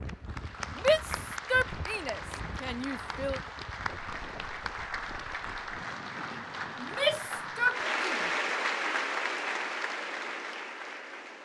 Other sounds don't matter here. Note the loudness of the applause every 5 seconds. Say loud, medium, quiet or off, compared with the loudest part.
medium, loud, medium.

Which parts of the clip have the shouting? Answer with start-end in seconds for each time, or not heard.
0.8-3.4, 6.8-8.3.